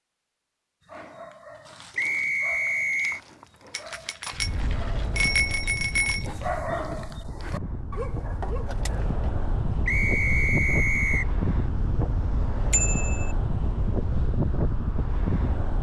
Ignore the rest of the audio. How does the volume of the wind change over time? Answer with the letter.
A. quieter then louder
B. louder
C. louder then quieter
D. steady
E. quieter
B.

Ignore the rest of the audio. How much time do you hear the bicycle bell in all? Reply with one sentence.
You can hear the bicycle bell for 3 seconds altogether.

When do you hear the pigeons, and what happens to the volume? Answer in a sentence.
The pigeons can't be heard in this clip.